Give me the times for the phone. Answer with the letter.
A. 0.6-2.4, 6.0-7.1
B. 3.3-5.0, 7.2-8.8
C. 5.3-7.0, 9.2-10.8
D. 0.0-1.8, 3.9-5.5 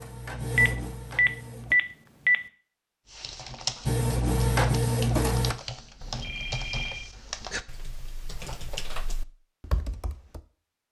A.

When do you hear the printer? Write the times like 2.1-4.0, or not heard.
0.0-1.8, 3.9-5.5.